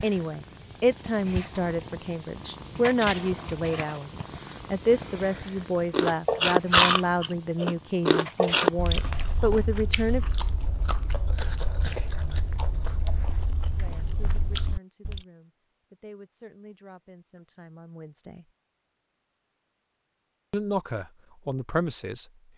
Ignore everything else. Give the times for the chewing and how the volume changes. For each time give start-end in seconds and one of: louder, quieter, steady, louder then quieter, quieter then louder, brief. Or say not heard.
5.9-15.2 quieter.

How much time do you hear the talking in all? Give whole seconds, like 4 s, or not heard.
17 s.